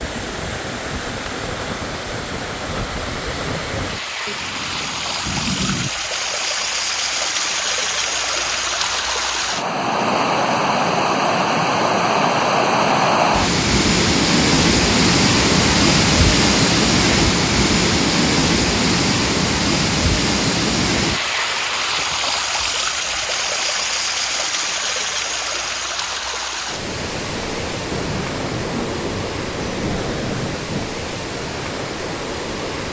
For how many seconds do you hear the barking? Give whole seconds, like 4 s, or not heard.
not heard.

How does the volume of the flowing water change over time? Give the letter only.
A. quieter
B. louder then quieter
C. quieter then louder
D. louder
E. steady
B.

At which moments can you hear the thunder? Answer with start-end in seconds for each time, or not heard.
4.2-5.9, 27.9-30.9.